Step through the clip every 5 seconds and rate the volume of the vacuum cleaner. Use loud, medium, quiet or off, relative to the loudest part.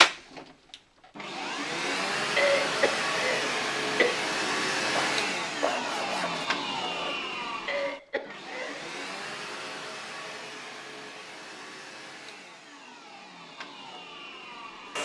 loud, medium, quiet.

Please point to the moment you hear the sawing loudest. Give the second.
6 s.